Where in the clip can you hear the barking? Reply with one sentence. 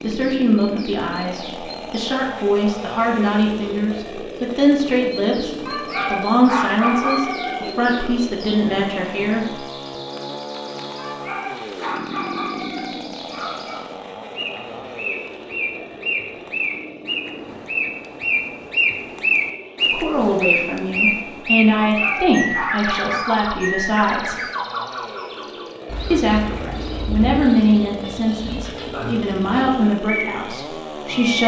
The barking can be heard from 5.7 to 8.1 s, from 10.9 to 13.8 s and from 21.8 to 23.4 s.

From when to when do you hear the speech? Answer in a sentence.
The speech can be heard from 0.0 to 9.7 s, from 19.9 to 24.4 s and from 26.1 to 31.4 s.